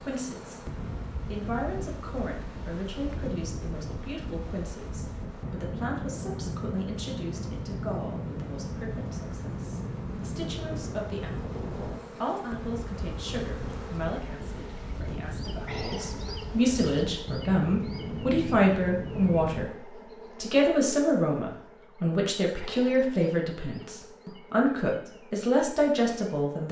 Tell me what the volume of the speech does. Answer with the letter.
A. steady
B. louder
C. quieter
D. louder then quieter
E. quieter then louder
B.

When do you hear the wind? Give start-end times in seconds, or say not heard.
0.0-19.7.